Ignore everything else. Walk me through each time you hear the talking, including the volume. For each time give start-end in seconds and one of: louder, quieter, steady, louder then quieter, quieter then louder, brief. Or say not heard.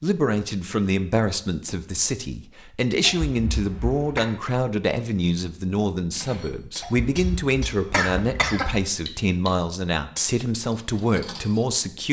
0.0-12.0 steady.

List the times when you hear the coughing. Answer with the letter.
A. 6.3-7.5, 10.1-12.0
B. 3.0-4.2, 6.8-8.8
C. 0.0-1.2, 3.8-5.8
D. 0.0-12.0
B.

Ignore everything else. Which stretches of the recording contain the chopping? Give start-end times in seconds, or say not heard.
not heard.